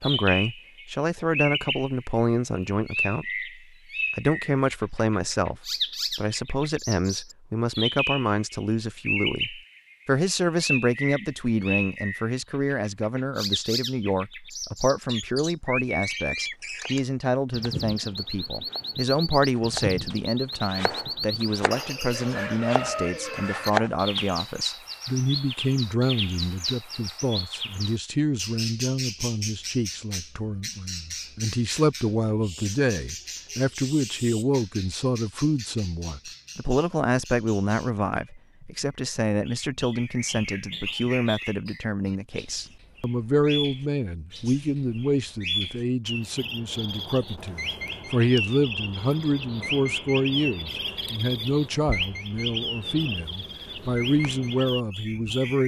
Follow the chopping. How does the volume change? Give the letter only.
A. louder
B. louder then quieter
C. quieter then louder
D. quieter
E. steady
A.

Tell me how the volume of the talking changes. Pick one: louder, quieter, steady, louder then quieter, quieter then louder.
steady.